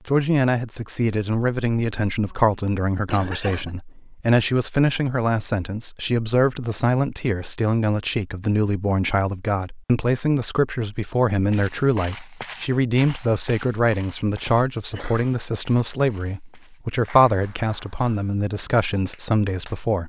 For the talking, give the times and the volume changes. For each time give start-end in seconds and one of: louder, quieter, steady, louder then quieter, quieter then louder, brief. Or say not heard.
0.1-20.0 steady.